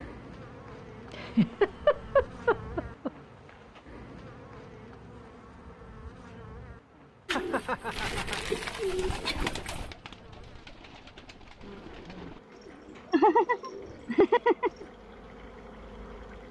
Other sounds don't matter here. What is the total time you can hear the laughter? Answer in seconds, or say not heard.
5 s.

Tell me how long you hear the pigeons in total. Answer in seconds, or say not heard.
8 s.